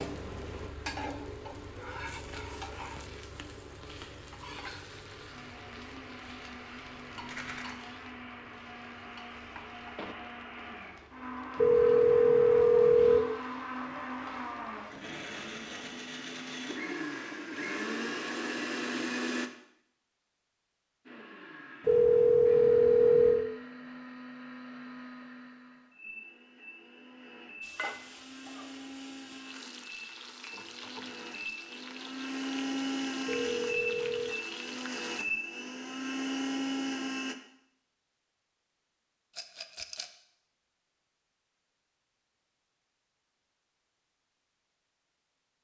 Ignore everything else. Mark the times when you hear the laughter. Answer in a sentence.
You can't hear the laughter here.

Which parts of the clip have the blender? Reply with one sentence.
You can hear the blender from 5.3 to 19.5 s and from 21.1 to 37.4 s.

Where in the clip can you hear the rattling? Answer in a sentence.
You can hear the rattling from 7.1 to 7.8 s and from 39.4 to 40.0 s.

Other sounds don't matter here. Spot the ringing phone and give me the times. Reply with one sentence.
The ringing phone can be heard from 11.6 to 13.2 s, from 21.9 to 23.4 s and from 33.2 to 34.4 s.